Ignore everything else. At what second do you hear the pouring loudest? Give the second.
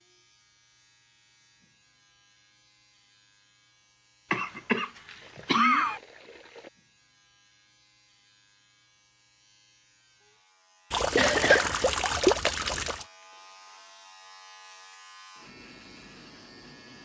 12 s.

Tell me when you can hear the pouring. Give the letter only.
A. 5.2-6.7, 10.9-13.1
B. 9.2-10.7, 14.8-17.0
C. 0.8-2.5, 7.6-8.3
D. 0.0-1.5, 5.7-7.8
A.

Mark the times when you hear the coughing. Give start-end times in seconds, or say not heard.
4.3-6.0, 11.2-11.9.